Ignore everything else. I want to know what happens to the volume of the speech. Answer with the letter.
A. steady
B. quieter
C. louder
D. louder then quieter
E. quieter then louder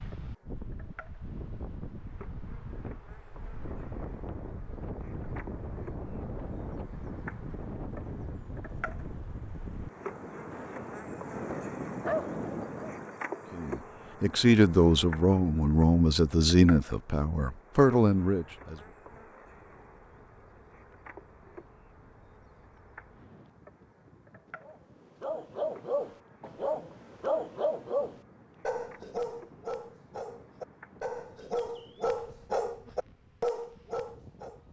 A.